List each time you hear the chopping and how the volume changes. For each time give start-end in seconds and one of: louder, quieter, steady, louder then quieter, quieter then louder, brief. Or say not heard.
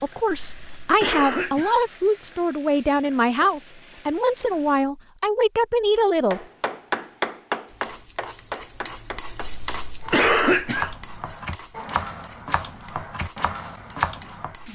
6.3-14.6 quieter then louder.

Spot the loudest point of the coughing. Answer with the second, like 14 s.
10 s.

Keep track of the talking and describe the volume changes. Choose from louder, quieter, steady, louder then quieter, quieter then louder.
steady.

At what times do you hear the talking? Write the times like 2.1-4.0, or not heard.
0.0-6.5.